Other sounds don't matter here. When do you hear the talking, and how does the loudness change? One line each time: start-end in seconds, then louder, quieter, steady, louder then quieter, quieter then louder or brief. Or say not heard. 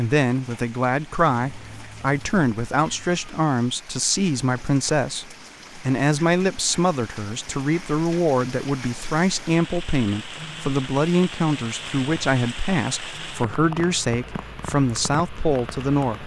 0.0-16.2 steady.